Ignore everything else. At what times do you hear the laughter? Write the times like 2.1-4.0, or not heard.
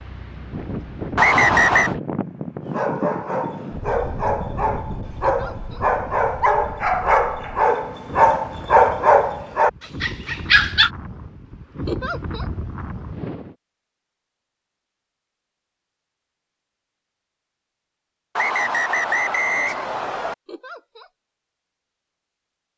5.2-5.8, 11.8-12.4, 20.4-21.1.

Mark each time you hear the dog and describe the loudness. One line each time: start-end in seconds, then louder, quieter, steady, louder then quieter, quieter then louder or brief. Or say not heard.
2.6-10.9 louder.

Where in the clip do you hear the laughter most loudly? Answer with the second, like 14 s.
12 s.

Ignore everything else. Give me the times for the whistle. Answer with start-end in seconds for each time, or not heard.
1.1-1.9, 18.4-20.4.